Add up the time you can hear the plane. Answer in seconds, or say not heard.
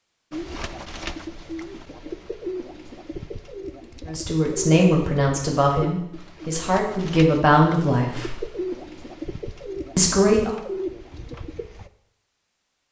not heard.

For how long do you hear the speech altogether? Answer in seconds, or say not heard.
5 s.